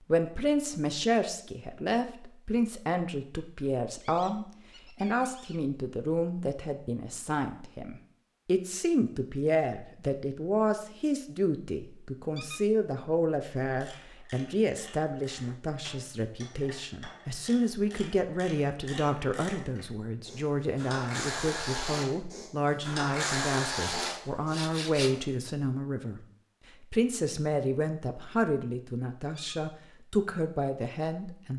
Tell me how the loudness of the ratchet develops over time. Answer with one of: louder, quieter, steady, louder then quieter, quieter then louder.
louder.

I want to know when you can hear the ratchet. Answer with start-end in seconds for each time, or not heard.
13.8-24.6.